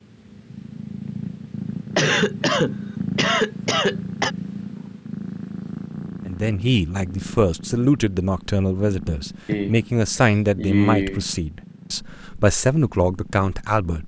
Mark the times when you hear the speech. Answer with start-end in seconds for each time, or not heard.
6.2-14.0.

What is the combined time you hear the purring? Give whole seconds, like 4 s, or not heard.
14 s.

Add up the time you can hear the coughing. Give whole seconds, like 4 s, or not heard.
4 s.